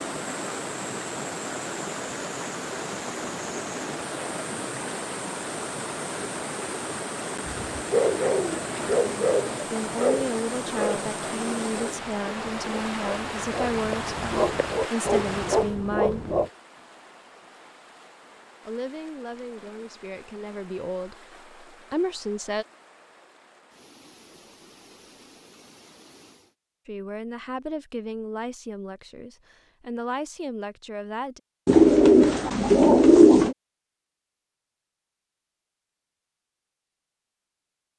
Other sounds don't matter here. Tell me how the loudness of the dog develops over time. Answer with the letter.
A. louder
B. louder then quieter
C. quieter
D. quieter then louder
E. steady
D.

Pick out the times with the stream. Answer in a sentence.
The stream can be heard from 0.0 to 26.6 s.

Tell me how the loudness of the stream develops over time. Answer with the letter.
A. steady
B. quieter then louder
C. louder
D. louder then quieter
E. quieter
E.